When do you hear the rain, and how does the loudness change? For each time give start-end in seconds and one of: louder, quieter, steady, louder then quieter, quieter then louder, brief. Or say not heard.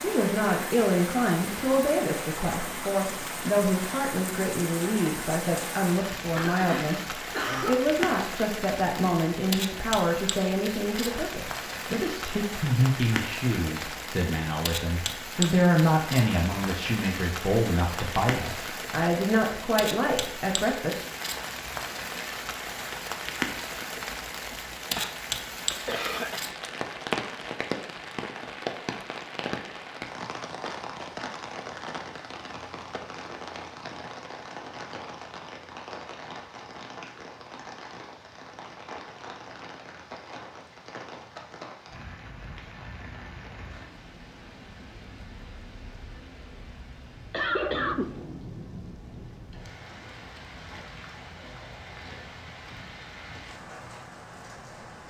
0.0-55.0 quieter.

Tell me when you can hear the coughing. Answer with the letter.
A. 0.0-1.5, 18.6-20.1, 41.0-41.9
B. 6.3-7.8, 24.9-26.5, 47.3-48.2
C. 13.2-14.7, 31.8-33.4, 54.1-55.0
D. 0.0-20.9
B.